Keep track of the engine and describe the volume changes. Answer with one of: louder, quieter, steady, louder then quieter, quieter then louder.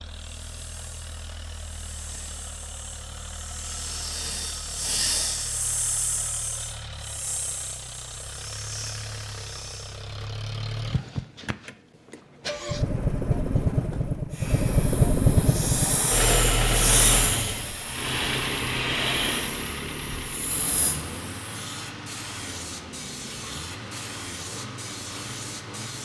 louder then quieter.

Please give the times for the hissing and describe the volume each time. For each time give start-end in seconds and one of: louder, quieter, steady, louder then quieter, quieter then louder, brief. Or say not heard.
0.0-10.1 louder then quieter
14.3-26.0 quieter.